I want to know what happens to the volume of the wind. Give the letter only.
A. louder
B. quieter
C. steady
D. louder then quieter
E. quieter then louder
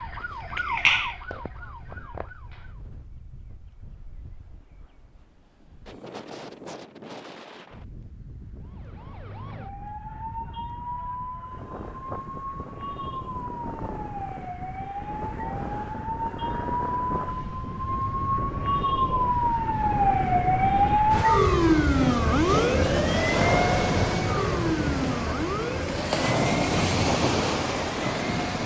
A.